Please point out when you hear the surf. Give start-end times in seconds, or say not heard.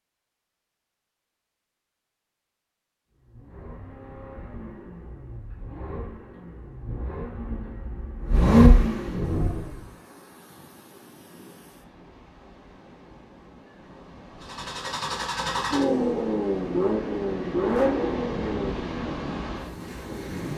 9.2-20.5.